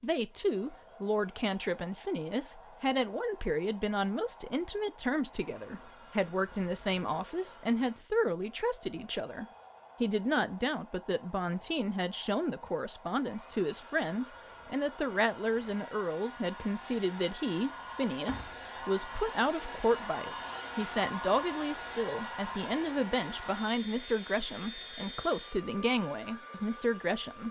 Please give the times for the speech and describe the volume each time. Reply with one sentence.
The speech can be heard from 0.0 to 27.4 s, at a steady volume.